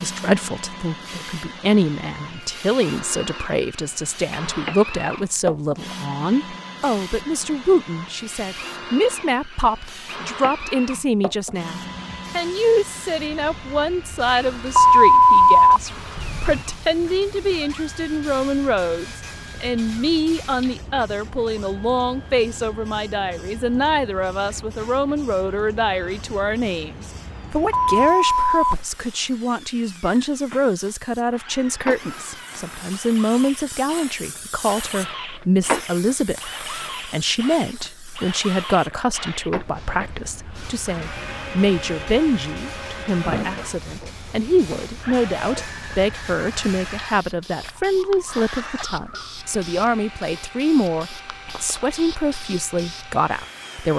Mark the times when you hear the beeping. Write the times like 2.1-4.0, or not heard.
14.8-16.6, 27.7-28.8.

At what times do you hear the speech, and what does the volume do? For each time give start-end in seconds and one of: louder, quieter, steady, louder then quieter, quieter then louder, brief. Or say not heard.
0.0-53.9 steady.